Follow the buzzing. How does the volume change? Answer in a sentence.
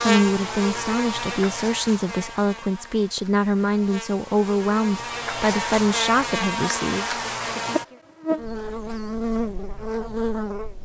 The loudness of the buzzing goes down, then up.